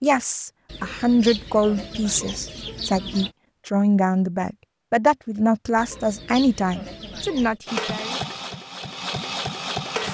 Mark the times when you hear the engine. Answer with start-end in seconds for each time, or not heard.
7.7-10.0.